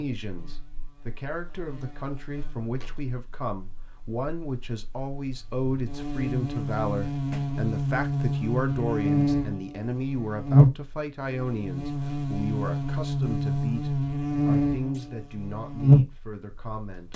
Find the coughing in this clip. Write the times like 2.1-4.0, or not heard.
not heard.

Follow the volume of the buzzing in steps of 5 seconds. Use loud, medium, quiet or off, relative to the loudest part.
quiet, medium, loud, loud.